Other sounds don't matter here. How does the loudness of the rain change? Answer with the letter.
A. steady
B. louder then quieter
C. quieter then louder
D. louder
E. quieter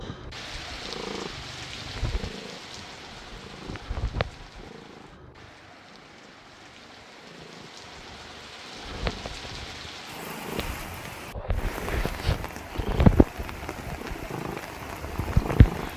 C.